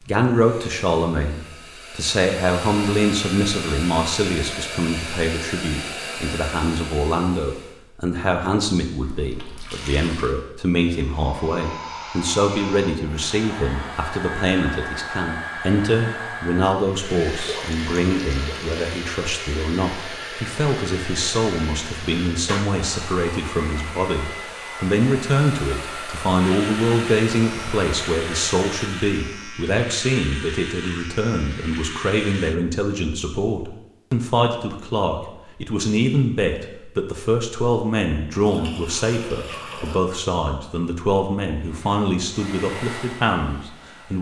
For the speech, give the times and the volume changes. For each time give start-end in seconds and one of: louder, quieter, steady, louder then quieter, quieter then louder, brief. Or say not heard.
0.1-44.1 steady.